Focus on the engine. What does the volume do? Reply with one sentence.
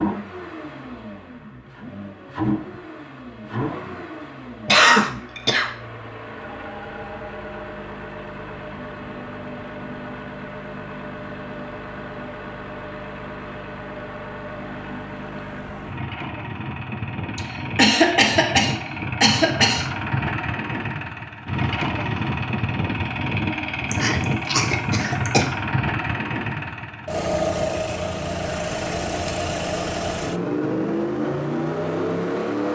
The loudness of the engine goes up.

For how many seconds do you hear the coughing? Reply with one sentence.
The coughing can be heard for 5 seconds in total.